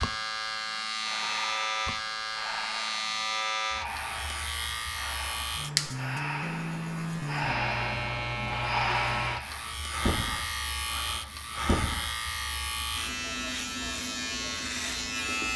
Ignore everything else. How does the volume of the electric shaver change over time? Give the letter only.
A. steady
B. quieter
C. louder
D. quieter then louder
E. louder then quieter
A.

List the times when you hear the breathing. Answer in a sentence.
The breathing can be heard from 0.7 to 12.2 s.